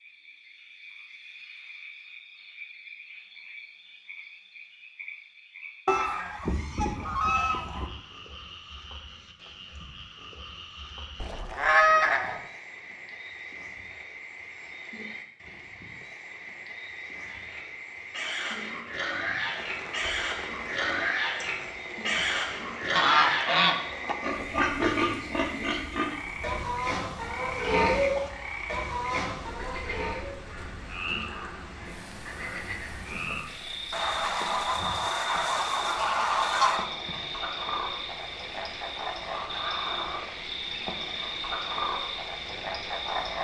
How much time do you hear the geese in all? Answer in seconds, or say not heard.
8 s.